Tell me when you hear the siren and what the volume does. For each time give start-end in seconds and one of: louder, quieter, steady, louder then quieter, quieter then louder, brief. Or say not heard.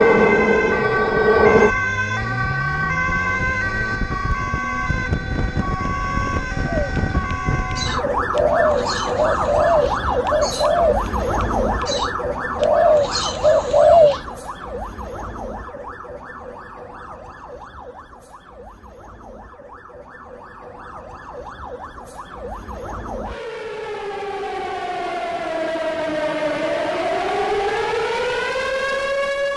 0.0-29.5 quieter then louder.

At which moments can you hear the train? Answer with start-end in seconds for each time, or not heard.
0.0-1.8.